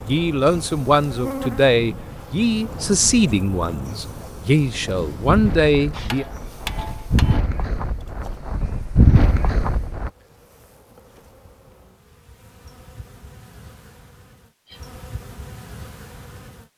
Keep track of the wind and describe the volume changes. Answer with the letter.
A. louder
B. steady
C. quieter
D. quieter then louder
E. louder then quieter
A.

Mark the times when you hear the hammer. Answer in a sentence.
You can hear the hammer from 5.9 to 7.4 s.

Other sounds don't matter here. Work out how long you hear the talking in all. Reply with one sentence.
The talking can be heard for 6 seconds in total.